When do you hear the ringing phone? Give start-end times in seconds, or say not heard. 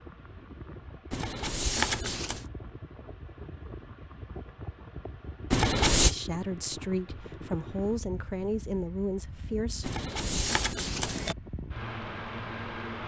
1.1-2.4, 5.5-6.2, 9.8-11.3.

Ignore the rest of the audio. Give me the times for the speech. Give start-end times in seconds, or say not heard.
6.0-9.9.